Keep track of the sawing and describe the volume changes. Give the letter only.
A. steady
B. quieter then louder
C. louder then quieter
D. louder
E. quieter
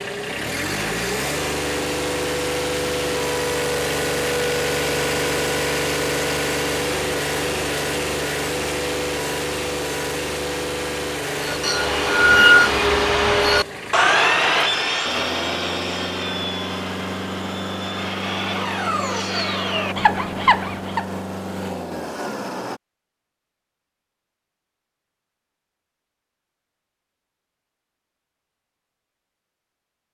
B.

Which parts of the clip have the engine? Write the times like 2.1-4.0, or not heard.
0.0-22.8.